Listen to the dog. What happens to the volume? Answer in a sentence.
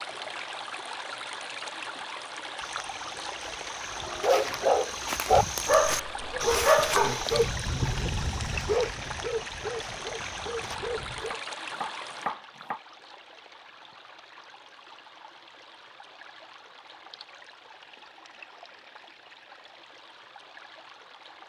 The volume of the dog goes down.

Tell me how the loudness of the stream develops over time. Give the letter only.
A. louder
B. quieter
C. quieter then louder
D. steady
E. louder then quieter
B.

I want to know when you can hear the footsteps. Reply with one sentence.
You can hear the footsteps from 2.6 to 10.8 s.